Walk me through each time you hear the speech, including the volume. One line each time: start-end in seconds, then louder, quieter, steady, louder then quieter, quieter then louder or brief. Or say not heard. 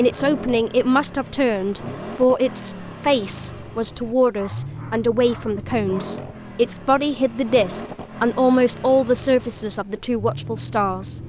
0.0-11.2 steady.